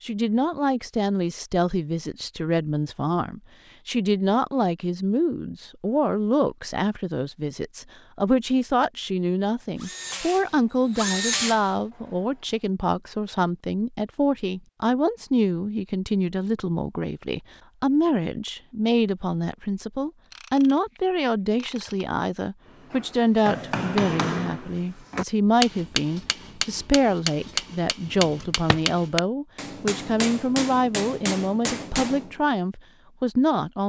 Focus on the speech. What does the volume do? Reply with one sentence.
The loudness of the speech stays about the same.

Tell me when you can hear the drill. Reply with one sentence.
You can hear the drill from 9.8 to 11.7 s.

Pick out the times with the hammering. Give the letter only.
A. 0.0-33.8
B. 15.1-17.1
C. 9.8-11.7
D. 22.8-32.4
D.